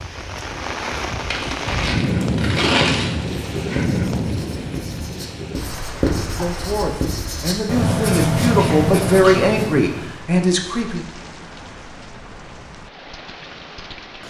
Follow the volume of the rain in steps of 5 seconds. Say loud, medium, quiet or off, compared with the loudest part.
loud, medium, quiet.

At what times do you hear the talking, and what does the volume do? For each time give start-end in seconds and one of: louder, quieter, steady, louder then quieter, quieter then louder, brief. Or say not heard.
6.3-11.1 louder.